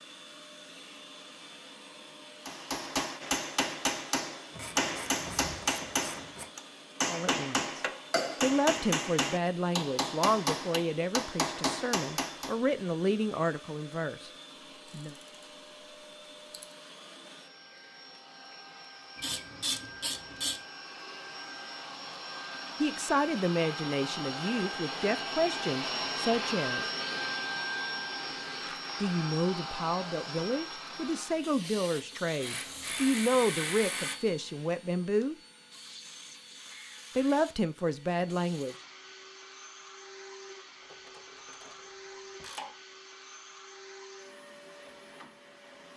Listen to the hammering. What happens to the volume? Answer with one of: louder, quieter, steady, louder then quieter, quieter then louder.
steady.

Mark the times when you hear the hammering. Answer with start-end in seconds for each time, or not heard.
2.5-12.6.